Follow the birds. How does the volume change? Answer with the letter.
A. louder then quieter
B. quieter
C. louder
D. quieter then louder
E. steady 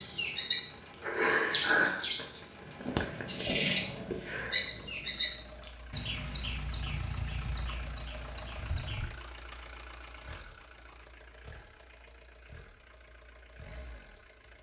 B.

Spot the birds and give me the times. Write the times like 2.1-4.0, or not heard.
0.0-9.1.